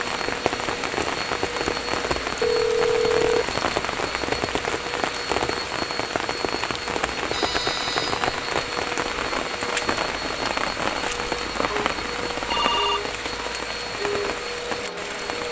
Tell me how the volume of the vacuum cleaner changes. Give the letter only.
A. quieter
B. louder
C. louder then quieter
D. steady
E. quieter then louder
D.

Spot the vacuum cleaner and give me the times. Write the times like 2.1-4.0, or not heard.
0.0-15.4.